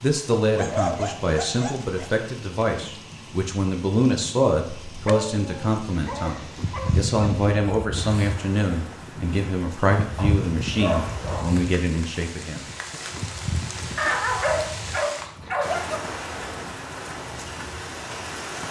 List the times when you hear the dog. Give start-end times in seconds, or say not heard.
0.5-2.1, 4.8-7.1, 10.2-11.7, 13.9-16.0.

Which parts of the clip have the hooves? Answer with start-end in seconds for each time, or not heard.
6.5-15.6.